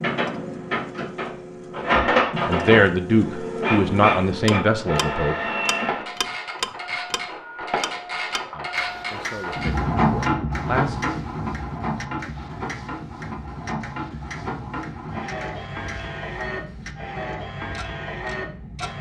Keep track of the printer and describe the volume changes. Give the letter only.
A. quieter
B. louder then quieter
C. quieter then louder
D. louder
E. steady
A.